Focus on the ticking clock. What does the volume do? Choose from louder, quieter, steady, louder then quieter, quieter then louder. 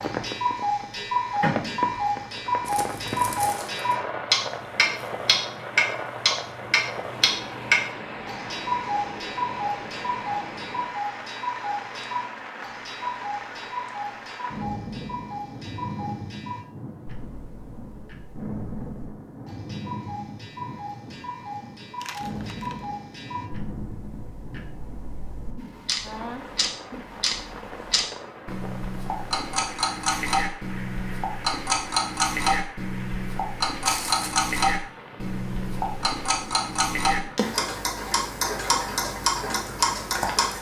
quieter then louder.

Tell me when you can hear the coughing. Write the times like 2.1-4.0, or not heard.
not heard.